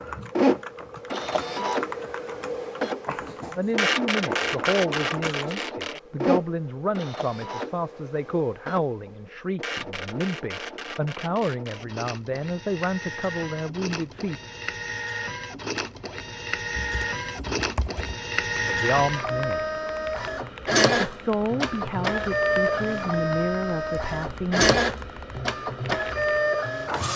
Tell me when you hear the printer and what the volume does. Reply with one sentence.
You can hear the printer from 0.0 to 27.1 s, getting quieter then louder.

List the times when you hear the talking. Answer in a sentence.
The talking can be heard from 3.5 to 14.4 s, from 18.6 to 19.6 s and from 21.1 to 24.6 s.